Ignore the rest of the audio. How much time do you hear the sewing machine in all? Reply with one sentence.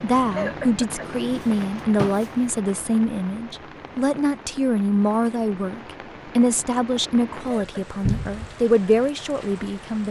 The sewing machine can't be heard in this clip.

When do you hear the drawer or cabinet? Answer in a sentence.
The drawer or cabinet can be heard from 1.0 to 2.2 s and from 8.1 to 8.6 s.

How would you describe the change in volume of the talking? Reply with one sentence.
The volume of the talking stays about the same.